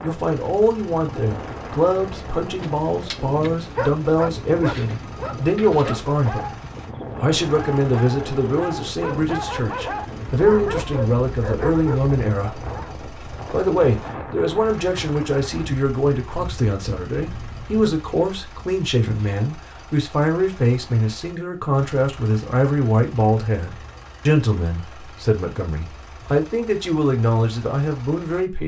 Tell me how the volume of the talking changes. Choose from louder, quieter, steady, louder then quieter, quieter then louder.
steady.